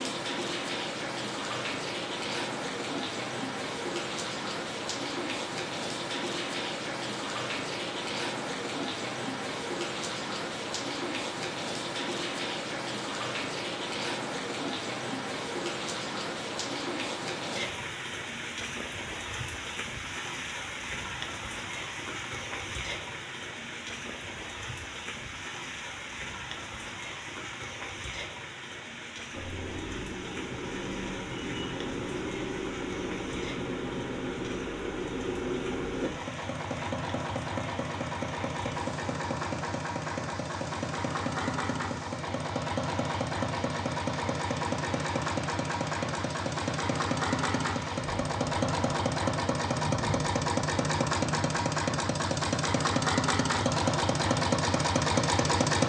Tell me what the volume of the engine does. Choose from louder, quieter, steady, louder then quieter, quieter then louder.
louder.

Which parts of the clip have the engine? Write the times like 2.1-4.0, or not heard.
29.3-55.8.